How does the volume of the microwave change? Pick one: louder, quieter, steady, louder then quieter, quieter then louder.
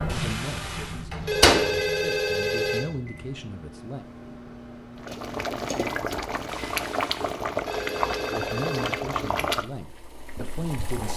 quieter.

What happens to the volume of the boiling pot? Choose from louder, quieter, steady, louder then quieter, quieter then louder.
quieter.